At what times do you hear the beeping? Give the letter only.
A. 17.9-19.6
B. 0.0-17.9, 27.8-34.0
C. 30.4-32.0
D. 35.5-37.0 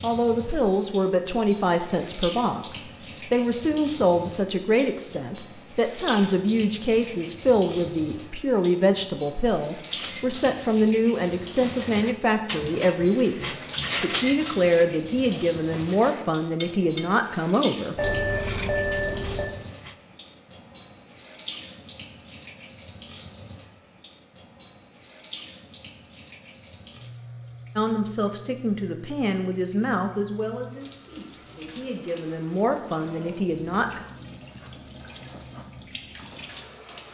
A.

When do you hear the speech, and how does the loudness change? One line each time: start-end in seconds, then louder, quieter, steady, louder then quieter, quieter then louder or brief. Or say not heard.
0.0-17.9 steady
27.8-34.0 quieter then louder.